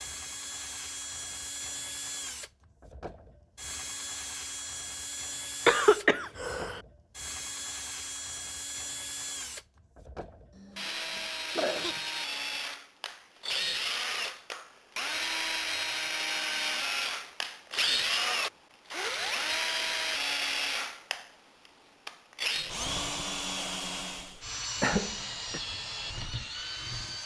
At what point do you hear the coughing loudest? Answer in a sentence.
The loudest moment of the coughing is at 6 seconds.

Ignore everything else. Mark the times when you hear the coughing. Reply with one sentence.
The coughing can be heard from 5.7 to 6.8 s, from 10.6 to 12.0 s and from 24.8 to 25.6 s.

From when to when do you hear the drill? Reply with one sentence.
You can hear the drill from 0.0 to 27.2 s.